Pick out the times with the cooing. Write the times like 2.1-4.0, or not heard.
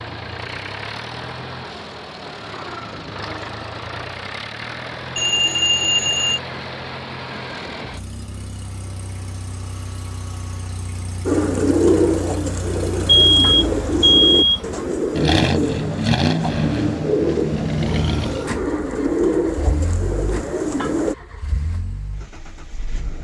11.2-21.1.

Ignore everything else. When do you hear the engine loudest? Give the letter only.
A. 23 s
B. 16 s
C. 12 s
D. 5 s
B.